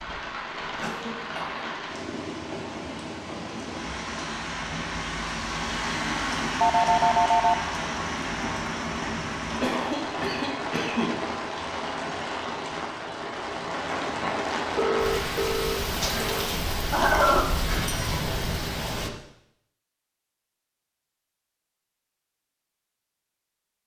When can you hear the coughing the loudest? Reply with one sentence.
The loudest moment of the coughing is at 17 seconds.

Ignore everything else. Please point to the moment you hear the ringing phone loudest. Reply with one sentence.
The loudest moment of the ringing phone is at 7 seconds.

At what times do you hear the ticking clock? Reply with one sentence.
The ticking clock can't be heard in this clip.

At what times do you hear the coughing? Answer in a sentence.
You can hear the coughing from 0.7 to 1.6 s, from 9.6 to 11.2 s and from 16.7 to 18.4 s.